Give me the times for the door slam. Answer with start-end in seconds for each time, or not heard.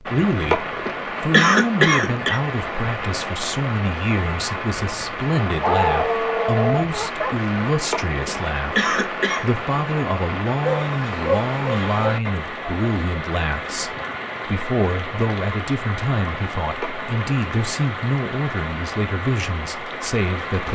not heard.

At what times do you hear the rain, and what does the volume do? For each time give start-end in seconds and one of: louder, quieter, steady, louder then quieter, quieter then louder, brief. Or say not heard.
0.0-20.7 steady.